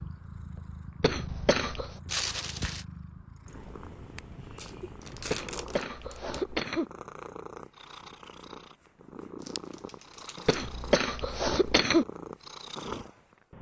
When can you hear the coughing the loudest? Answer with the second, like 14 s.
12 s.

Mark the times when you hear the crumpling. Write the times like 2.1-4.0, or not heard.
2.0-2.9, 4.5-6.3, 9.4-10.7.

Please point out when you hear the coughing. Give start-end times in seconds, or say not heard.
1.0-1.9, 5.3-6.8, 10.4-12.1.